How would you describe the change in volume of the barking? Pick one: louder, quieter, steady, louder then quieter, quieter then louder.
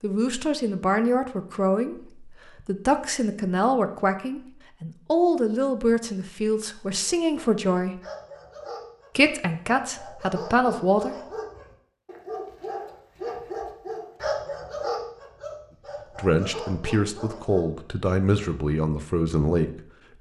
louder then quieter.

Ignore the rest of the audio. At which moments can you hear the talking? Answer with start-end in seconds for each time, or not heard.
0.0-8.0, 9.2-11.2, 16.1-20.1.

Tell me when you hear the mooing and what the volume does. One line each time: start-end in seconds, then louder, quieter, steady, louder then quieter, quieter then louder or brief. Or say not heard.
not heard.